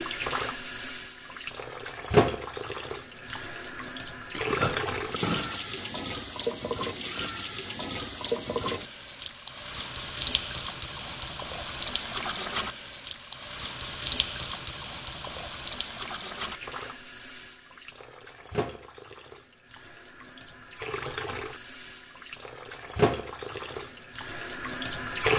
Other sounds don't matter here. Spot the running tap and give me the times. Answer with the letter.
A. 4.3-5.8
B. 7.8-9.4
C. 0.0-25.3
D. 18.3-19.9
C.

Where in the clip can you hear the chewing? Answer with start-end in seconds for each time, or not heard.
4.3-5.8.